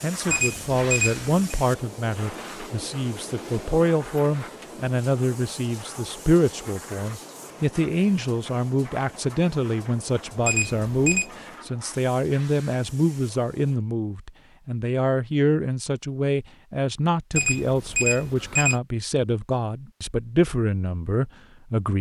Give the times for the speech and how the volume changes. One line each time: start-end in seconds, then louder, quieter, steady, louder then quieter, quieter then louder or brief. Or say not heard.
0.0-21.9 steady.